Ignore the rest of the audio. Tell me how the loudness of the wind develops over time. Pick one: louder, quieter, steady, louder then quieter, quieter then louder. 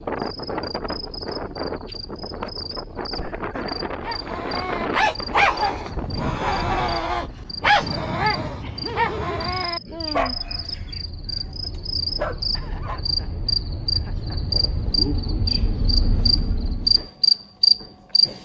steady.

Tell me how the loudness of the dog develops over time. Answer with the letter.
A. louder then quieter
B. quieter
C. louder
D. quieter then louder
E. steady
B.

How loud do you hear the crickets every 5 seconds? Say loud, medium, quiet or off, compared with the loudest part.
quiet, quiet, medium, loud.